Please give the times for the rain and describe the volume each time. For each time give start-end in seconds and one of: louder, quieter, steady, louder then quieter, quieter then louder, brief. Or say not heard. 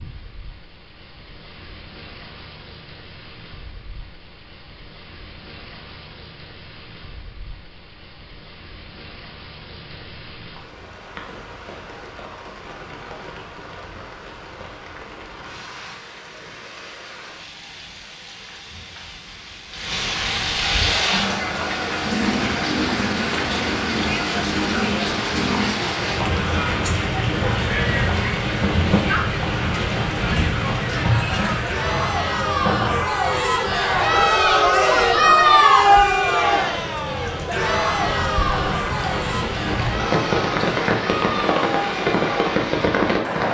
0.0-43.4 louder.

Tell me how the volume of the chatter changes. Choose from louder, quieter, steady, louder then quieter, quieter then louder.
louder then quieter.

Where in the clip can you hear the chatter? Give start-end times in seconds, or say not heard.
20.8-43.4.